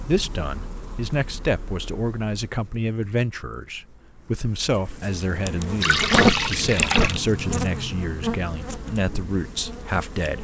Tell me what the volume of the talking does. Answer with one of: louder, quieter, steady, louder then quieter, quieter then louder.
steady.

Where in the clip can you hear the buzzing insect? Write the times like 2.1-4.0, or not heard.
0.0-10.3.